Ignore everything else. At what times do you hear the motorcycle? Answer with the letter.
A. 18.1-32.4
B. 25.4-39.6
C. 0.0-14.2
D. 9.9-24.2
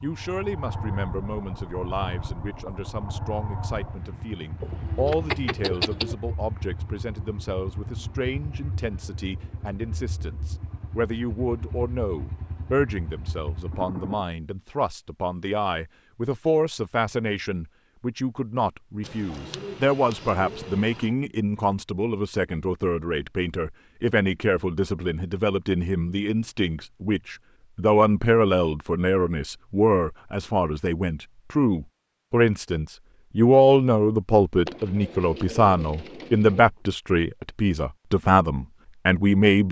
C.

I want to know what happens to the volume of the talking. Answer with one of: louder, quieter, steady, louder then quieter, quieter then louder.
louder.